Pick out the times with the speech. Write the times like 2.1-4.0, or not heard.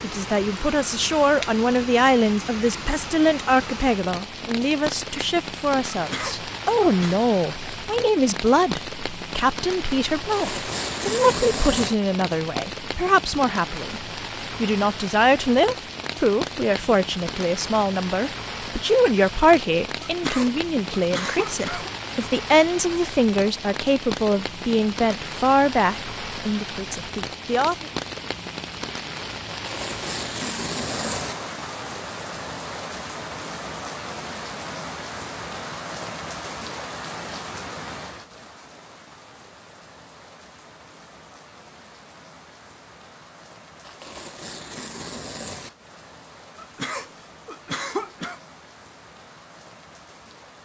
0.0-27.9.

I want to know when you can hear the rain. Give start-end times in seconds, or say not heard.
0.0-50.6.